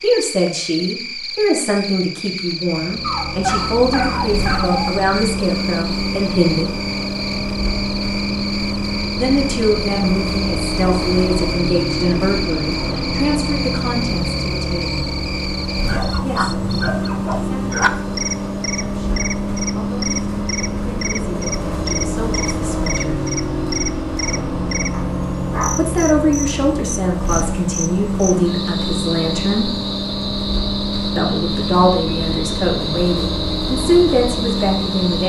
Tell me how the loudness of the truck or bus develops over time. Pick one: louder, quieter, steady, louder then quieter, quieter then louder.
steady.